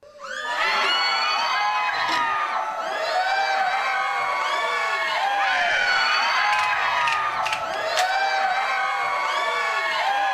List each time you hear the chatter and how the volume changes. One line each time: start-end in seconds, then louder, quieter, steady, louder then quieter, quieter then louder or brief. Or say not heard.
0.1-10.2 steady.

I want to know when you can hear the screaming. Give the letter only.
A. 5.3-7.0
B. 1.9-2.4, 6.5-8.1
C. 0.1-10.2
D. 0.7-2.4
A.